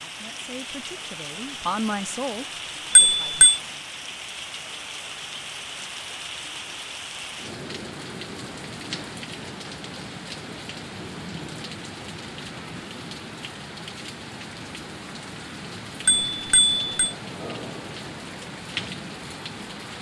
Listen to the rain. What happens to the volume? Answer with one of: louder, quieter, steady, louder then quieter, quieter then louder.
steady.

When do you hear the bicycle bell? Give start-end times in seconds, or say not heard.
3.0-3.6, 16.1-17.1.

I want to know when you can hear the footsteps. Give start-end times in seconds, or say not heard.
not heard.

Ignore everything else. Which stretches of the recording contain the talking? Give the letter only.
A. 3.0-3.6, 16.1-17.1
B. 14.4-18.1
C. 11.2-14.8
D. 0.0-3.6
D.